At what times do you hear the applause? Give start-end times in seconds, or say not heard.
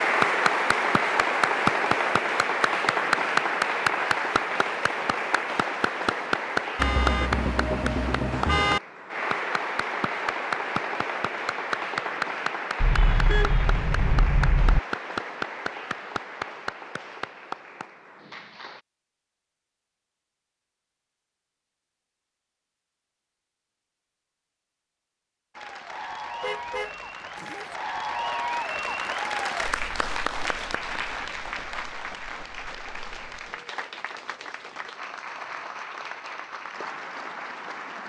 0.0-18.8, 25.6-38.0.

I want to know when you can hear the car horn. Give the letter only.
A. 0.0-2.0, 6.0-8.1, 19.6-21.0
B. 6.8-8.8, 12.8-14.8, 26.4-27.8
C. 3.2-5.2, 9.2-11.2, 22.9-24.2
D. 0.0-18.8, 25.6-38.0
B.